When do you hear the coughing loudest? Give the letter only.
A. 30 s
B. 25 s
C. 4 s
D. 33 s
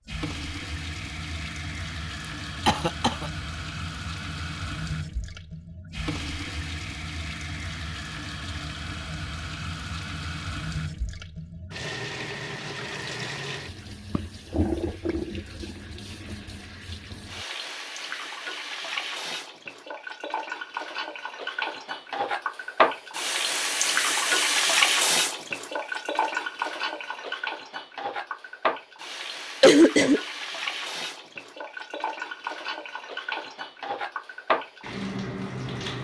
A.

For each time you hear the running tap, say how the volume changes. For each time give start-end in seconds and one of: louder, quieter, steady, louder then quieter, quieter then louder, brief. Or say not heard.
0.1-35.9 louder then quieter.